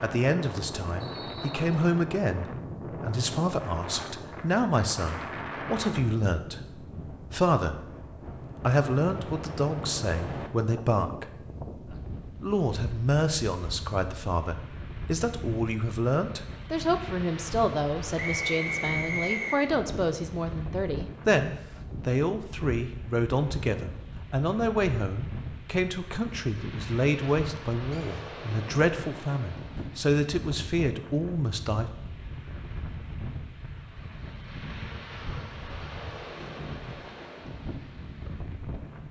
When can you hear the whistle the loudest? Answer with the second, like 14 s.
19 s.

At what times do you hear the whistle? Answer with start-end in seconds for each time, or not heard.
1.0-1.6, 18.1-19.6, 27.9-28.3.